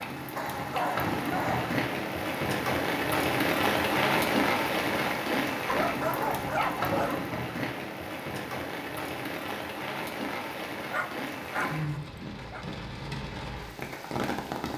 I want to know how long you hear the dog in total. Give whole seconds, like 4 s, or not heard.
5 s.